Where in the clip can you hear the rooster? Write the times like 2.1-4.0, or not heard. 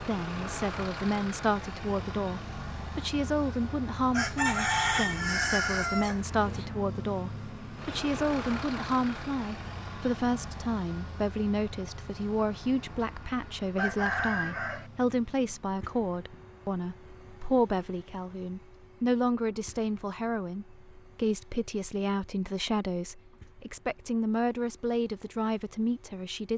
4.1-6.7, 13.8-14.9.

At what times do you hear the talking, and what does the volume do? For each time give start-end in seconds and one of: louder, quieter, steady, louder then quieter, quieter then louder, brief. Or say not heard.
0.0-26.5 steady.